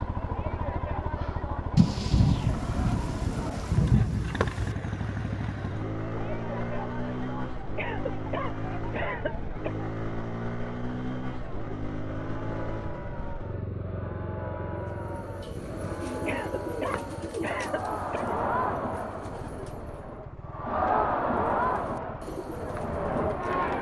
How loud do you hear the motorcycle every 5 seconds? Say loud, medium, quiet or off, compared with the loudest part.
loud, loud, loud, medium, medium.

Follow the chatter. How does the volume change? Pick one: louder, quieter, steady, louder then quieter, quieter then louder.
louder.